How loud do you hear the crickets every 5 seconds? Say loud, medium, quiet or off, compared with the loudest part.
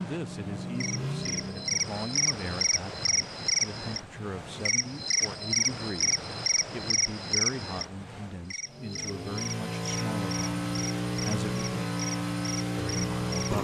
loud, loud, medium.